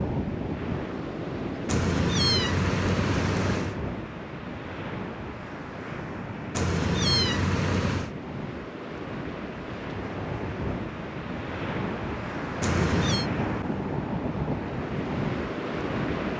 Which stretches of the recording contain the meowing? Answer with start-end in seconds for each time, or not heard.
1.6-3.8, 6.5-8.2, 12.6-13.3.